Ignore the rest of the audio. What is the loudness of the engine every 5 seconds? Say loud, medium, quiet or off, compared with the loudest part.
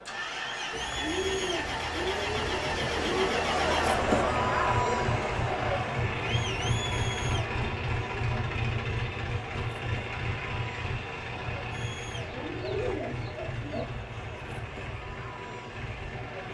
loud, loud, medium, medium.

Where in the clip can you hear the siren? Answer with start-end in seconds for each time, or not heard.
not heard.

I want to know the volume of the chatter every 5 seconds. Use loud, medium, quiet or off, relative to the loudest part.
loud, medium, quiet, quiet.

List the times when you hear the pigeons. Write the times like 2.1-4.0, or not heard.
0.7-3.5, 12.2-13.8.